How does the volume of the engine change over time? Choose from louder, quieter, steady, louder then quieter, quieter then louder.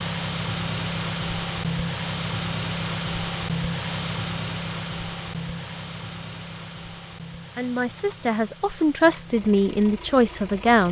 quieter.